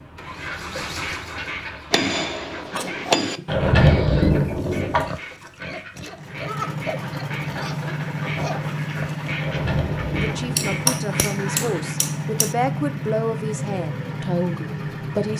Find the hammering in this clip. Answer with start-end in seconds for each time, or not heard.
1.9-3.4, 10.6-12.6.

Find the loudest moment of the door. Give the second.
4 s.